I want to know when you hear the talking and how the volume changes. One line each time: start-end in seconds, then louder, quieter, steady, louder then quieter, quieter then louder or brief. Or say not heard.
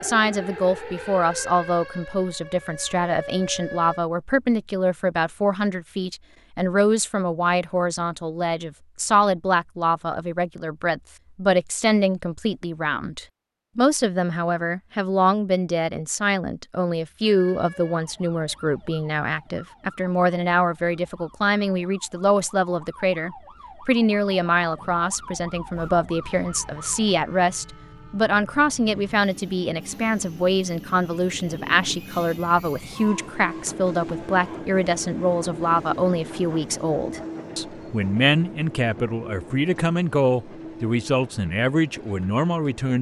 0.0-42.9 steady.